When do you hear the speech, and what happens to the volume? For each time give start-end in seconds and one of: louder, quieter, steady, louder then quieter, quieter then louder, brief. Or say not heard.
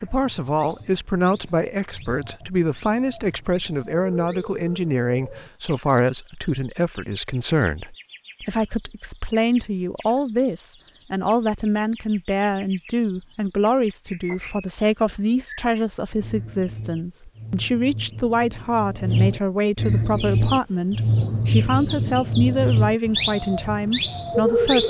0.0-24.8 steady.